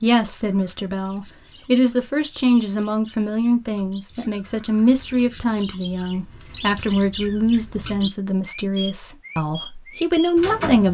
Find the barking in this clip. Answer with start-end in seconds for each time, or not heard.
not heard.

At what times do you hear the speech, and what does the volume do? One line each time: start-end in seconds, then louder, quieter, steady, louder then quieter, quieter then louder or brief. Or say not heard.
0.0-10.8 steady.